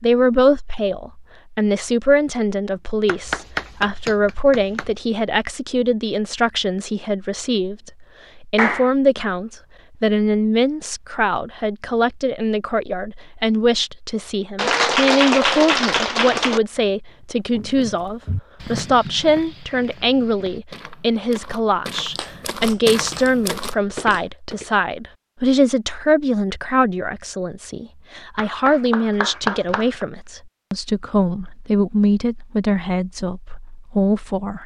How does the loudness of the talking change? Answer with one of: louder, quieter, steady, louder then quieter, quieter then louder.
steady.